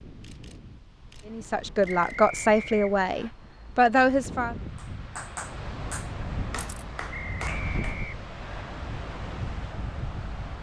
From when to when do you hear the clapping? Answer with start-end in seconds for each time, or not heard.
4.8-8.0.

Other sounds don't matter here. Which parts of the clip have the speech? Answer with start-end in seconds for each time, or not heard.
1.2-4.5.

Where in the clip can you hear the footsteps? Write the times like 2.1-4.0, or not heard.
not heard.